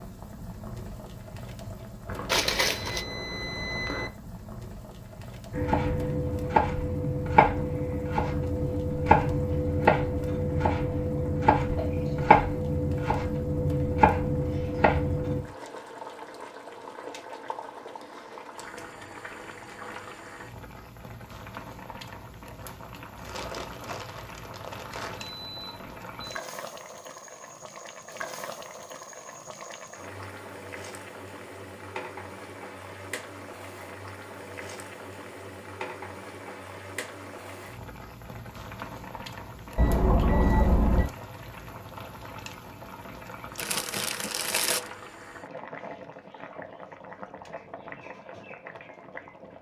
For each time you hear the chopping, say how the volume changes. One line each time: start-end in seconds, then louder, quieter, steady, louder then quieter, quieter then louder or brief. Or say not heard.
5.5-15.4 steady.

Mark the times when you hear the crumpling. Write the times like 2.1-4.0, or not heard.
2.2-3.0, 23.2-25.2, 43.5-44.9.